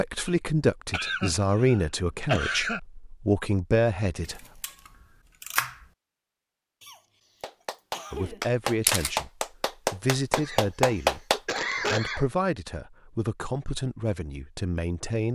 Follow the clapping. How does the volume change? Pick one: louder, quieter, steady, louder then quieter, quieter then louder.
louder.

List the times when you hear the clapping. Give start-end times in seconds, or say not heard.
7.4-11.6.